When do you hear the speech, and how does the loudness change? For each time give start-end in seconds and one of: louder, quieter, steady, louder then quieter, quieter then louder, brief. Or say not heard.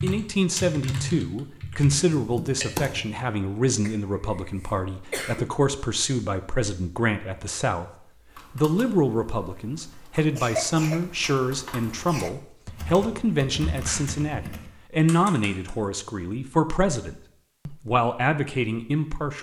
0.0-19.3 steady.